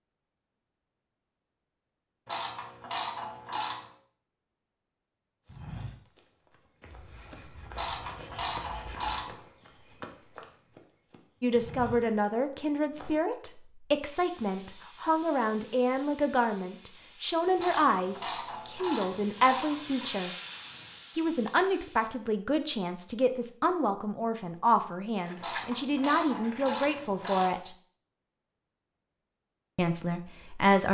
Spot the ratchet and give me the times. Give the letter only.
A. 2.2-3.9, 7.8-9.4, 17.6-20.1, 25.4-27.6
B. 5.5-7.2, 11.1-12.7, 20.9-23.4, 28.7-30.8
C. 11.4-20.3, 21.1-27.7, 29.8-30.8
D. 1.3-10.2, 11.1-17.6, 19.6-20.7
A.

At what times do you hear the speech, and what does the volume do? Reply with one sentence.
You can hear the speech from 11.4 to 20.3 s, at a steady volume; from 21.1 to 27.7 s, at a steady volume; and briefly from 29.8 to 30.8 s.